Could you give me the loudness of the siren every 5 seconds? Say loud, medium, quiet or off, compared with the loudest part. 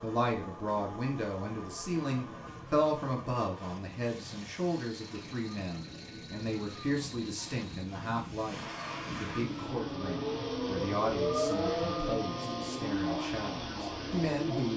quiet, medium, loud.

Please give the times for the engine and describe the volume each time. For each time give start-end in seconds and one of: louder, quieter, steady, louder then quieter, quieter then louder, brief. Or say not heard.
0.0-14.7 louder.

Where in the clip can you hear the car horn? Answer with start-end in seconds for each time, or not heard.
not heard.